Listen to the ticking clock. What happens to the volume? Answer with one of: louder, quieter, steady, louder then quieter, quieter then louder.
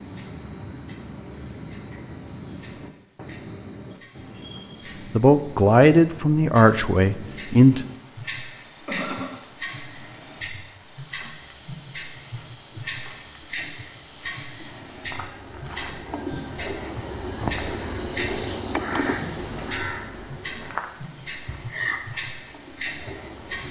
louder.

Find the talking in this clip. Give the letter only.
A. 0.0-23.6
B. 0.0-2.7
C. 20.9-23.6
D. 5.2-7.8
D.